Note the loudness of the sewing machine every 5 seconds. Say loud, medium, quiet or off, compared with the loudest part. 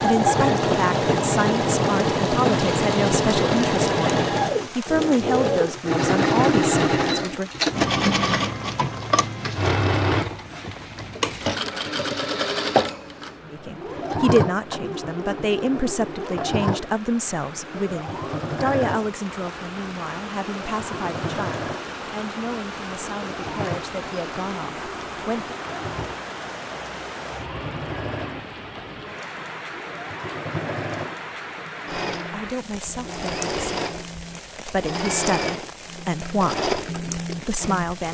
loud, loud, medium, medium, quiet, quiet, medium, medium.